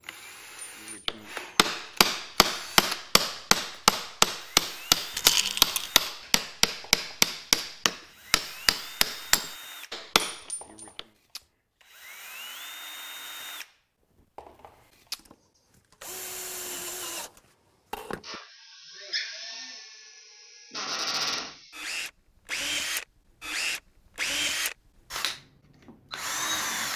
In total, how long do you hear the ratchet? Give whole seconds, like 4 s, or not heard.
not heard.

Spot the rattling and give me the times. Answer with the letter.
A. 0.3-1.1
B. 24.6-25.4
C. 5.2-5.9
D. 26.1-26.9
C.